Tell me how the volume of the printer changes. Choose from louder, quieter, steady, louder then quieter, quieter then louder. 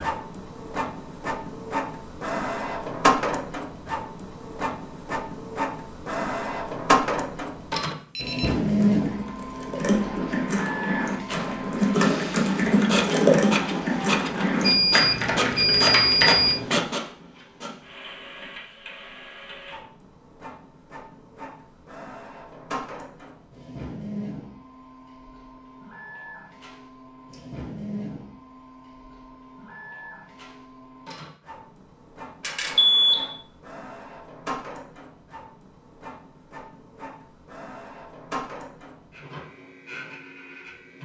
quieter.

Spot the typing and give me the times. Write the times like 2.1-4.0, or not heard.
8.6-16.8.